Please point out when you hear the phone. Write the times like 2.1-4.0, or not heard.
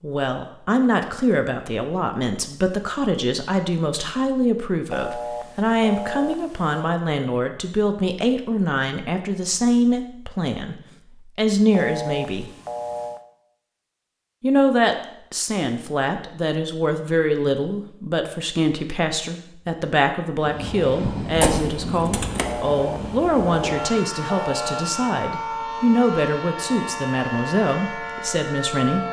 4.9-7.0, 11.7-13.2, 22.4-25.0.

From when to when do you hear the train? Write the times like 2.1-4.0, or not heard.
20.4-29.0.